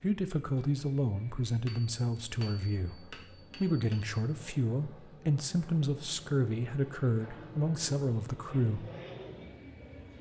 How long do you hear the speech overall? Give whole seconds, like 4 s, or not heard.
9 s.